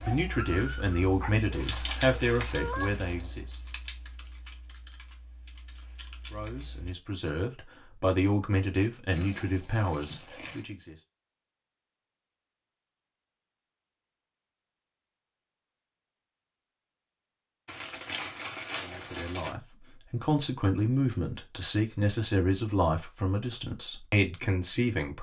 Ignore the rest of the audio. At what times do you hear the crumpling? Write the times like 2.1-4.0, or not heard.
1.5-3.1, 9.1-10.7, 17.6-19.6.